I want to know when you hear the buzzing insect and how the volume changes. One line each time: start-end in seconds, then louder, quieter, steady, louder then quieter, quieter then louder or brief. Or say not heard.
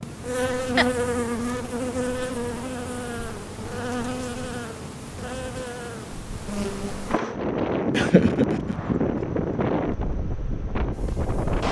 0.0-11.6 quieter.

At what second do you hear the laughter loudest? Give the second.
8 s.